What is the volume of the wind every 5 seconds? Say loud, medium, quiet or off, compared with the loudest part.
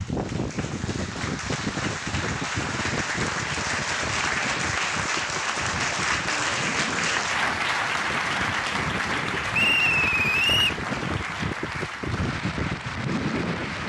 loud, medium, loud.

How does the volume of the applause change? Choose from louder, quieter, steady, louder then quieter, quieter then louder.
louder then quieter.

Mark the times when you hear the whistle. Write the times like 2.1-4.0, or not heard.
9.5-10.8.